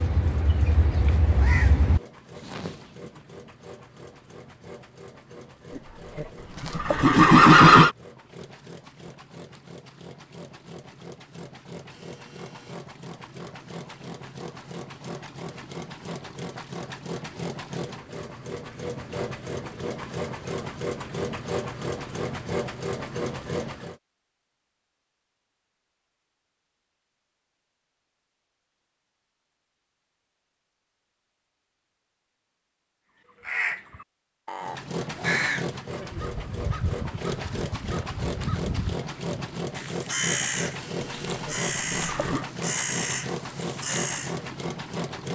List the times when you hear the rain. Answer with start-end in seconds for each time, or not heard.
not heard.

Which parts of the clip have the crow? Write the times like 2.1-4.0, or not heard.
0.0-2.7, 33.4-44.4.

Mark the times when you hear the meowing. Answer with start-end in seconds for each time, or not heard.
not heard.